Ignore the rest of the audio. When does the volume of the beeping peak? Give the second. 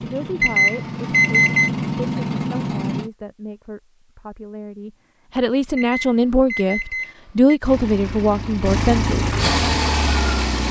1 s.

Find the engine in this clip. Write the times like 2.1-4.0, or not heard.
0.0-3.1, 7.6-10.6.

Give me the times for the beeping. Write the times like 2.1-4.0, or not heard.
0.4-1.7, 5.8-7.6.